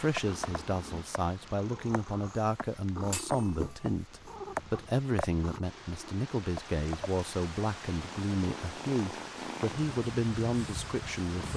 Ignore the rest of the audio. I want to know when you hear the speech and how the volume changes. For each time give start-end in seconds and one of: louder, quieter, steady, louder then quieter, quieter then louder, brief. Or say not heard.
0.0-11.5 steady.